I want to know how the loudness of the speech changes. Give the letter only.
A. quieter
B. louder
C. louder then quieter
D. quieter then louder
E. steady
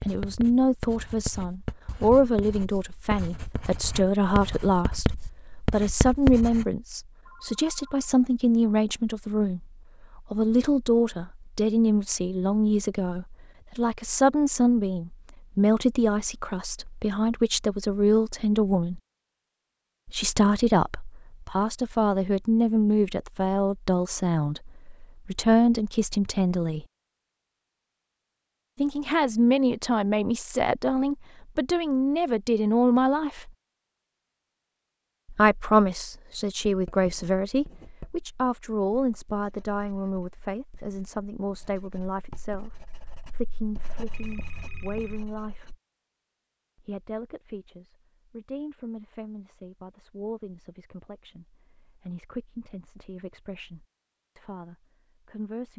A.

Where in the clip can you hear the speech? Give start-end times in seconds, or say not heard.
0.1-19.0, 20.1-26.9, 28.8-33.5, 35.2-45.8, 46.8-55.7.